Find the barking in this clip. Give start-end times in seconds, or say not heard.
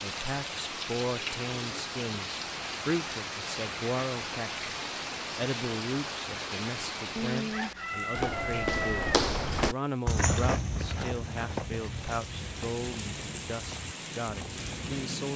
not heard.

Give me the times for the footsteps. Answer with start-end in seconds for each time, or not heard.
8.1-14.8.